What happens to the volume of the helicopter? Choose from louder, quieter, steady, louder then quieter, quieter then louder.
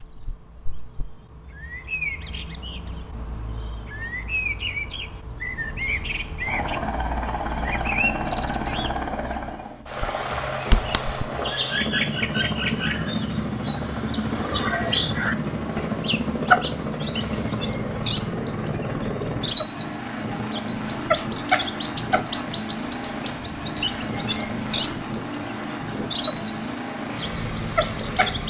steady.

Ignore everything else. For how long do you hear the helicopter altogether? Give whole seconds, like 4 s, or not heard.
22 s.